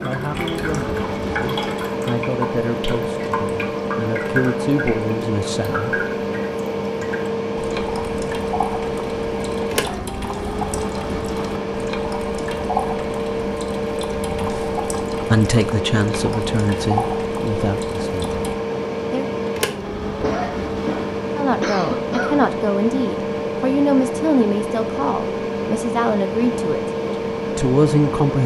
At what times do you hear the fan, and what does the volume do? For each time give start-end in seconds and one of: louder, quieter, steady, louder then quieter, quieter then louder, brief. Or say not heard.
0.0-28.4 steady.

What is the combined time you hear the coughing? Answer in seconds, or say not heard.
3 s.